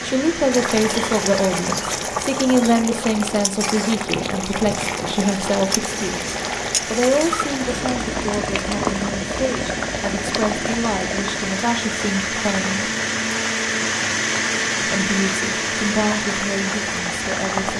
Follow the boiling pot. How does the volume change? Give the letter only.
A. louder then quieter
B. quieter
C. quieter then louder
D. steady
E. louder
B.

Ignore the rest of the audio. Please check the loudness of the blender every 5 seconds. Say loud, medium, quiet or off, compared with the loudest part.
medium, medium, loud, loud.